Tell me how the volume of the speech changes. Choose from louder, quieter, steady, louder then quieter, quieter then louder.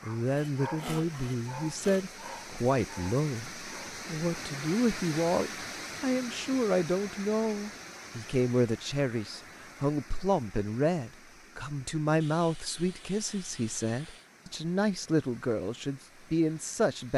steady.